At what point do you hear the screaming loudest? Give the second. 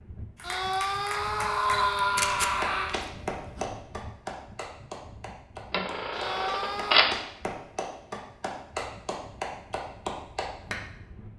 2 s.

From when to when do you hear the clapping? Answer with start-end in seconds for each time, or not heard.
0.3-10.8.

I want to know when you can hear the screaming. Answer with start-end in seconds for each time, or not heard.
0.4-3.0, 6.1-7.1.